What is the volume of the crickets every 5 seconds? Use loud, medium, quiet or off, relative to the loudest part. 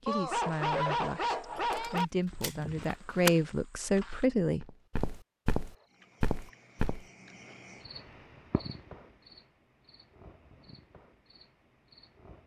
off, loud, medium.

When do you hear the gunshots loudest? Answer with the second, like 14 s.
3 s.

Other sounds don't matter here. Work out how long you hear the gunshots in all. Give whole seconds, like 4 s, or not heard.
2 s.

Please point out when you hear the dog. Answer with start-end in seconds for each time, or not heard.
0.1-2.0.